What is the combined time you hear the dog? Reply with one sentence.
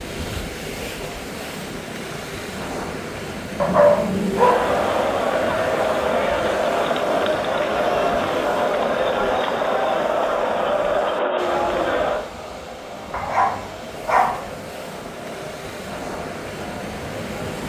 You can hear the dog for 3 seconds altogether.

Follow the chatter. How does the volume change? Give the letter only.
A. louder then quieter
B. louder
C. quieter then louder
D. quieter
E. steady
D.